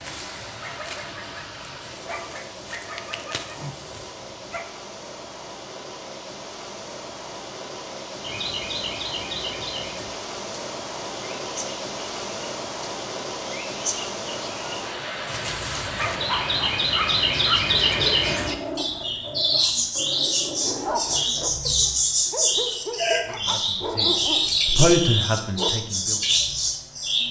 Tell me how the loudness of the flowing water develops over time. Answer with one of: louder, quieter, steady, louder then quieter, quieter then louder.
louder.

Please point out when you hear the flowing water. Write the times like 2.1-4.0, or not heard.
0.0-18.6.